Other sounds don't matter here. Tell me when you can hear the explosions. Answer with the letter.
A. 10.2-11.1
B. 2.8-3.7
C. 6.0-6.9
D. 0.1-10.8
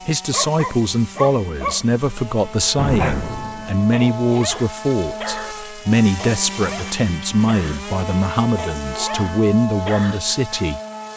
B.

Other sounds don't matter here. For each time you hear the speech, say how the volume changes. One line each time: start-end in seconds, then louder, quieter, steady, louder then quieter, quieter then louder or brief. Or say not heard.
0.1-10.8 steady.